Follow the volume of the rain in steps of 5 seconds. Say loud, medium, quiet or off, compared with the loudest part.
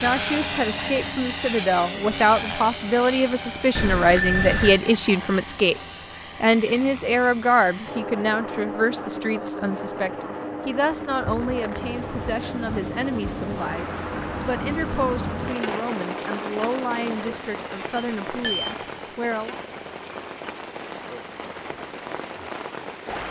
off, off, loud, loud, loud.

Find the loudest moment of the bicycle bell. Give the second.
4 s.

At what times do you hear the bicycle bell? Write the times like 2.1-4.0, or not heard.
3.8-4.8, 17.9-18.8.